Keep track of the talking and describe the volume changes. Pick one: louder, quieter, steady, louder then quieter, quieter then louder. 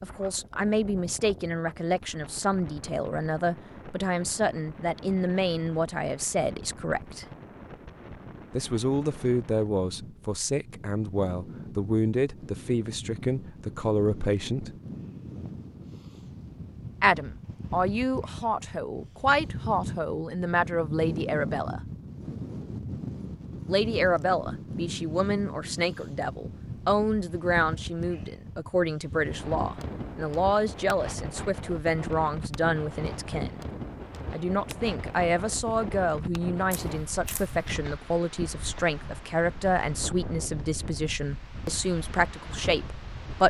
steady.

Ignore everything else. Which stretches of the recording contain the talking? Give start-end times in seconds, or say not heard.
0.0-7.2, 8.6-14.8, 17.0-21.8, 23.6-33.6, 34.3-43.4.